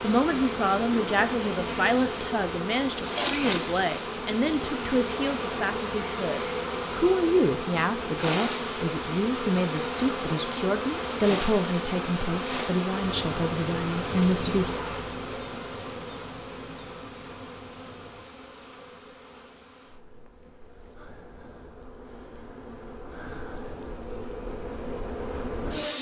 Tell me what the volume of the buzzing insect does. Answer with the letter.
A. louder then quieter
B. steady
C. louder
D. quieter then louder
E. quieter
E.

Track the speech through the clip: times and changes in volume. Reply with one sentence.
You can hear the speech from 0.0 to 14.8 s, at a steady volume.